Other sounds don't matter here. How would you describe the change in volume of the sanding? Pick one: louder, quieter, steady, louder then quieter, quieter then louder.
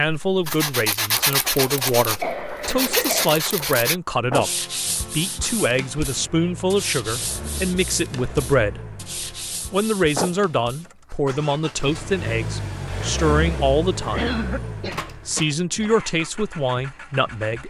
quieter.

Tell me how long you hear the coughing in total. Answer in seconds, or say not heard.
3 s.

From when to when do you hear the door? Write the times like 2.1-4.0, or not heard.
14.8-15.6.